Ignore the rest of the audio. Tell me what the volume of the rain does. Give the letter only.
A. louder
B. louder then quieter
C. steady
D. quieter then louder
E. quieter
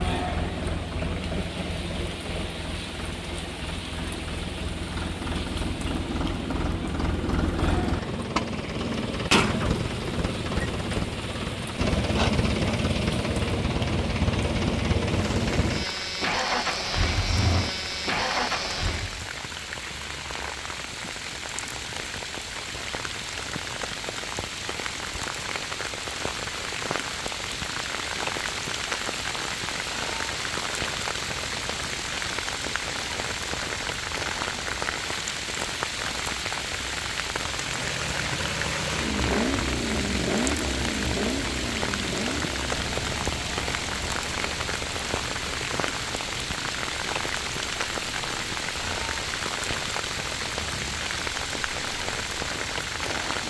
A.